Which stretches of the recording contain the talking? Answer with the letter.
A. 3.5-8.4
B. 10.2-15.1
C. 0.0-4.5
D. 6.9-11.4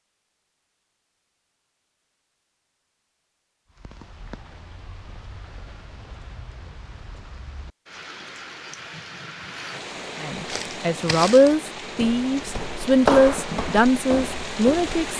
B.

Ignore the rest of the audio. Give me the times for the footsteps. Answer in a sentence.
You can hear the footsteps from 10.4 to 15.0 s.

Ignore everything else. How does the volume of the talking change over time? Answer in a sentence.
The volume of the talking stays about the same.